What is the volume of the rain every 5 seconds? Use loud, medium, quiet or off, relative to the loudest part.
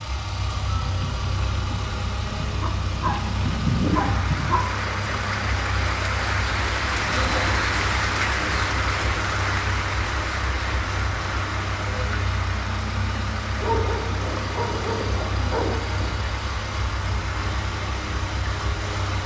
medium, loud, medium, medium.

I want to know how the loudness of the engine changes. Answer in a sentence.
The volume of the engine stays about the same.